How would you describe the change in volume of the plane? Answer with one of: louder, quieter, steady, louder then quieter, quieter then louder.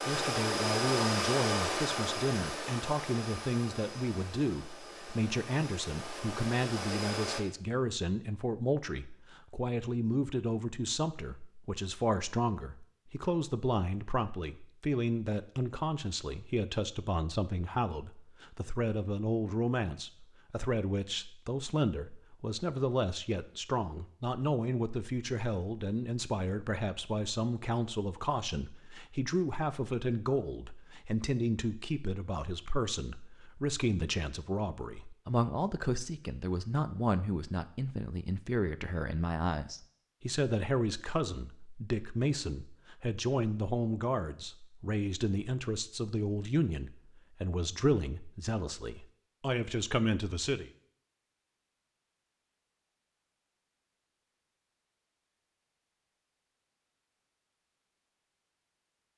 quieter then louder.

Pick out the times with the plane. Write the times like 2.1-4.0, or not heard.
0.0-7.4.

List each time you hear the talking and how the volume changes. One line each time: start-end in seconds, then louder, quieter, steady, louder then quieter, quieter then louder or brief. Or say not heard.
0.1-50.7 steady.